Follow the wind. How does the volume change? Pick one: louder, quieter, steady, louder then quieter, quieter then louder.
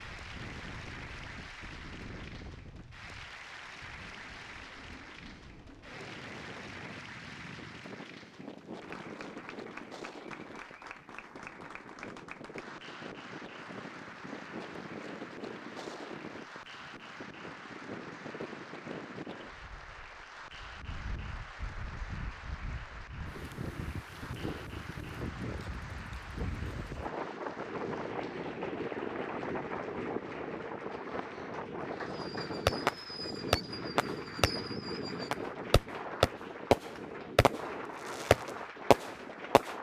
louder.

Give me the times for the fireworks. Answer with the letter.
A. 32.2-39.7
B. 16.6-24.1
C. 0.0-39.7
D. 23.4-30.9
A.